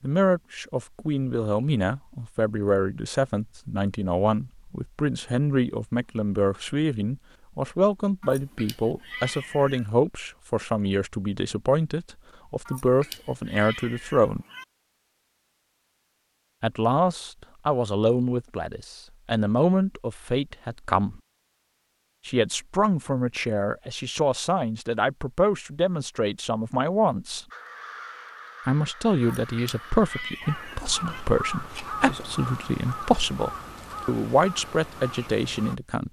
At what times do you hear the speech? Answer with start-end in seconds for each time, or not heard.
0.0-14.4, 16.6-21.2, 22.2-27.4, 28.6-36.0.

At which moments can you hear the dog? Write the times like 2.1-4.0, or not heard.
not heard.